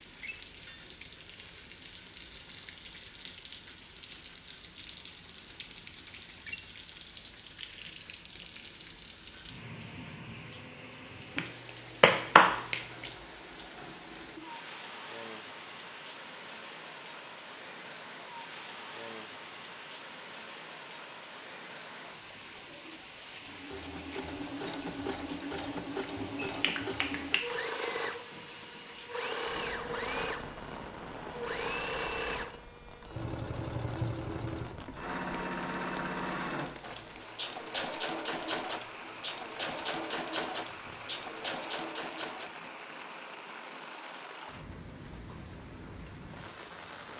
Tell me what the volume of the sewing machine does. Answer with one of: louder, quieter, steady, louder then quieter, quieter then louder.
steady.